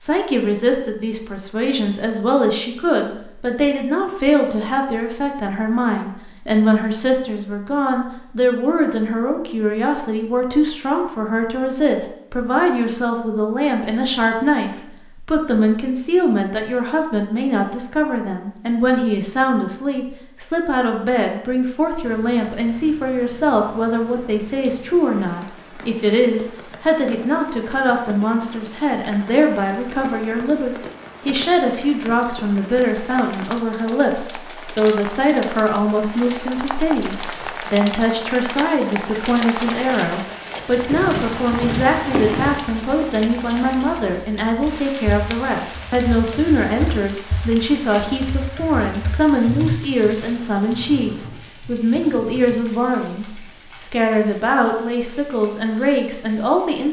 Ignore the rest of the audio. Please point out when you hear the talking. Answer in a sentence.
The talking can be heard from 0.0 to 56.8 s.